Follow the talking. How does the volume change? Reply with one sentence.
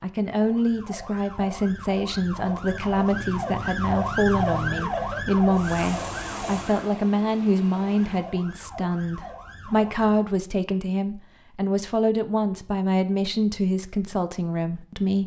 The loudness of the talking stays about the same.